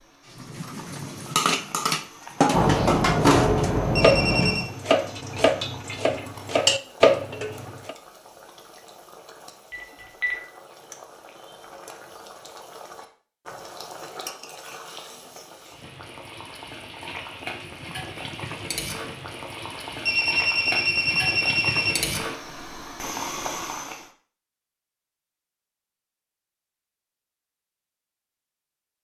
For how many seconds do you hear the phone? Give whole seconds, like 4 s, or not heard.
5 s.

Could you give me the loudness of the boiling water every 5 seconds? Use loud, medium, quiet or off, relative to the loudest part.
quiet, quiet, medium, medium, loud, off.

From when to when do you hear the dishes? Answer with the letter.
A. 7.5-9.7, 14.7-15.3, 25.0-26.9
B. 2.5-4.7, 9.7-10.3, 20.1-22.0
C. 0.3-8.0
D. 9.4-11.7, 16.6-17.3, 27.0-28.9
C.